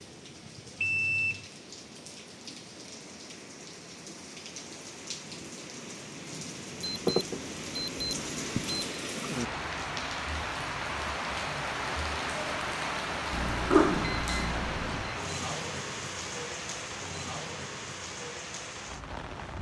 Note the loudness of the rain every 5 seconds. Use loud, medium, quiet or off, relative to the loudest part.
quiet, medium, loud, medium.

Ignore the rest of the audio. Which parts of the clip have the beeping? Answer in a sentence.
The beeping can be heard from 0.8 to 1.4 s, from 6.8 to 8.8 s and from 13.3 to 15.2 s.